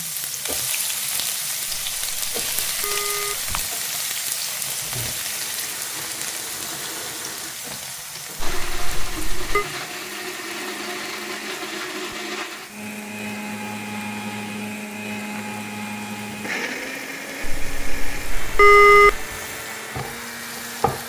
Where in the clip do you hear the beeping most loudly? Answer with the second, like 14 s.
19 s.